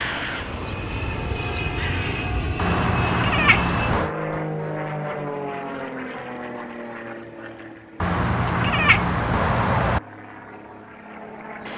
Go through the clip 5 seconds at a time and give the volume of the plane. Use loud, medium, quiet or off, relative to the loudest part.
loud, loud, medium.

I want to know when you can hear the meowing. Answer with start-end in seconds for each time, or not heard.
2.5-4.1, 8.0-10.0.